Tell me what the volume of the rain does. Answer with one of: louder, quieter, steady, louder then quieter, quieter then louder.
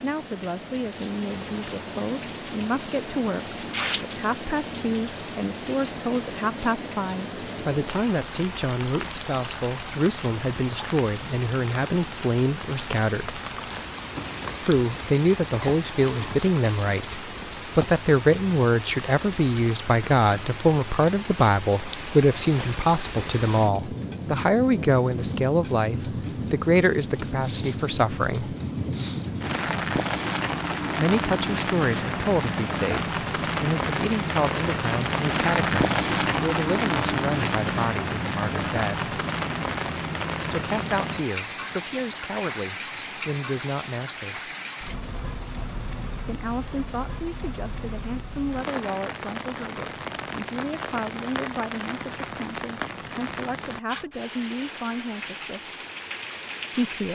louder then quieter.